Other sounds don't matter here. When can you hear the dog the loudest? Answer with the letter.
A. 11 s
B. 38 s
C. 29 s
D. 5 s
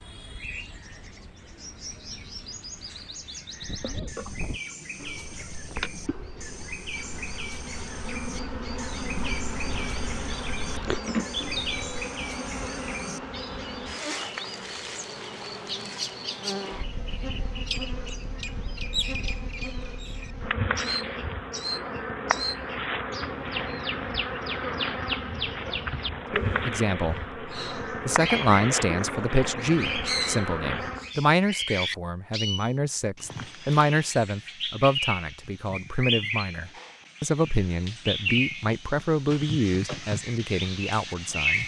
A.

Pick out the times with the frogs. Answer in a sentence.
The frogs can't be heard in this clip.